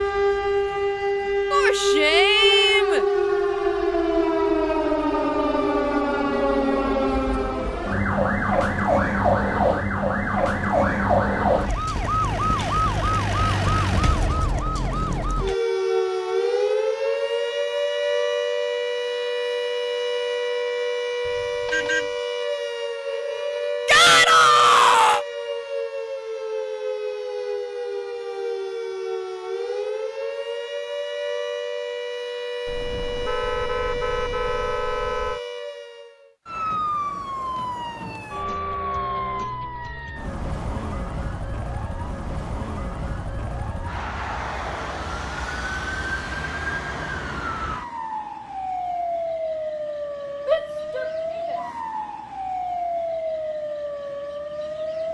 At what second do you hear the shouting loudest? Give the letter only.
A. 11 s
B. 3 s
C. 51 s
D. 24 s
D.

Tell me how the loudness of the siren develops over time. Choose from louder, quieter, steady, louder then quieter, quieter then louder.
quieter.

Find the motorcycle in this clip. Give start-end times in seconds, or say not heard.
not heard.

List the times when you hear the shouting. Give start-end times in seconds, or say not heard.
1.5-3.0, 23.9-25.2, 50.5-51.6.